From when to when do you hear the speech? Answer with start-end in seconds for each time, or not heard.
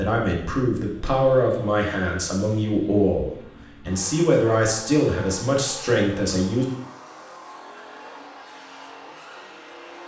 0.0-6.7.